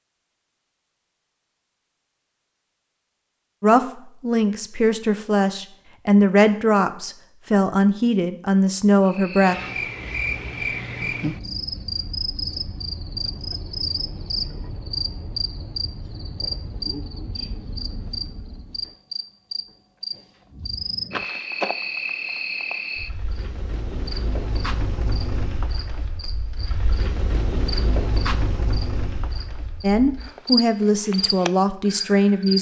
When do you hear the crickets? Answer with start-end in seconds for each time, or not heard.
9.1-32.5.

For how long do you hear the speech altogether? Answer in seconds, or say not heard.
9 s.